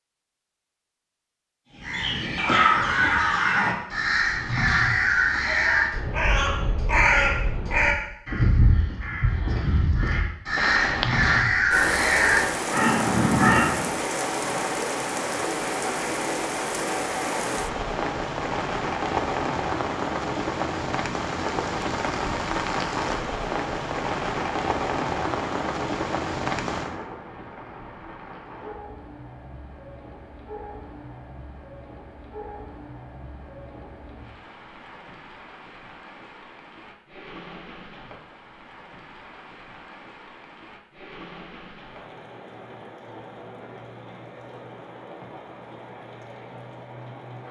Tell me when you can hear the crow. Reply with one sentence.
The crow can be heard from 1.8 to 13.9 s.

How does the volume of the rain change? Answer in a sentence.
The loudness of the rain goes down.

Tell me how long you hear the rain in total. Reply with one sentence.
You can hear the rain for 37 seconds altogether.